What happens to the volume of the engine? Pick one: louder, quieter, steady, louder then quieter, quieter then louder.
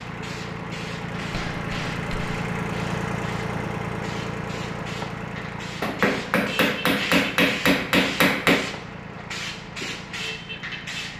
quieter.